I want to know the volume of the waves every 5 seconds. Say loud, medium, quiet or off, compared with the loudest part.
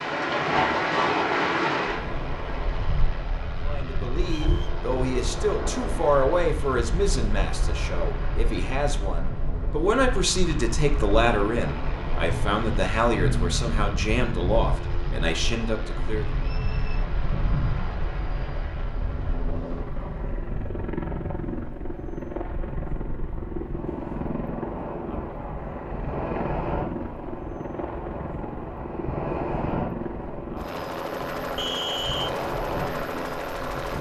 loud, medium, medium, medium, quiet, medium, medium.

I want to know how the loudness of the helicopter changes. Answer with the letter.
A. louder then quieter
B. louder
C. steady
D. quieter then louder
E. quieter
B.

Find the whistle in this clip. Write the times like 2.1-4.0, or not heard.
4.3-4.8, 16.4-17.1, 31.6-32.3.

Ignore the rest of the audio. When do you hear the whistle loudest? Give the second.
32 s.